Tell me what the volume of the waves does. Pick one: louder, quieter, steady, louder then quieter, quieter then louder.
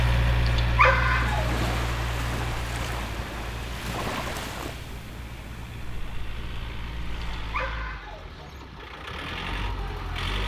quieter.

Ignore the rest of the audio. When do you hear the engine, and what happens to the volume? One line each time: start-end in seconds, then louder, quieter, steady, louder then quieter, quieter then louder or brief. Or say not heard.
0.0-10.4 quieter then louder.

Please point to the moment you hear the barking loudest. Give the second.
1 s.